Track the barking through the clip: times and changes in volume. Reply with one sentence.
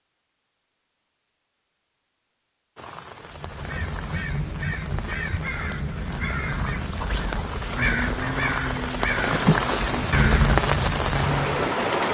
You can't hear the barking here.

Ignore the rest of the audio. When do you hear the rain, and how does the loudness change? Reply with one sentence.
The rain can be heard from 2.8 to 12.0 s, getting louder.